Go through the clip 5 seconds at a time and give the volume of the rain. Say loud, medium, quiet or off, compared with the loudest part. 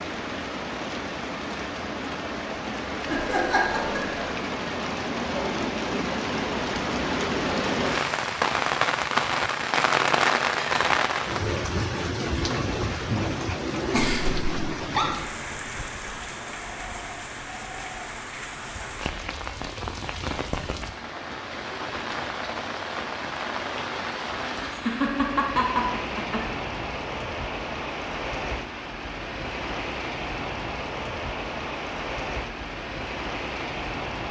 medium, loud, loud, medium, medium, medium, medium.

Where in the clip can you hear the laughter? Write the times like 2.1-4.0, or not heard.
3.0-4.3, 13.9-15.2, 24.7-26.4.